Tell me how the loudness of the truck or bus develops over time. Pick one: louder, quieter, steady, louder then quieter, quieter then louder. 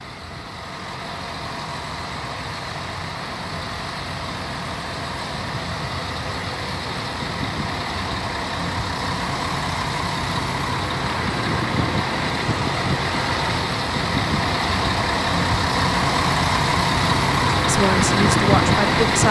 louder.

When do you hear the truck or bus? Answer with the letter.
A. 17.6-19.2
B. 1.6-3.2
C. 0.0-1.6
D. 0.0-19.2
D.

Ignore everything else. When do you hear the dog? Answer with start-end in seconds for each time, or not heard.
not heard.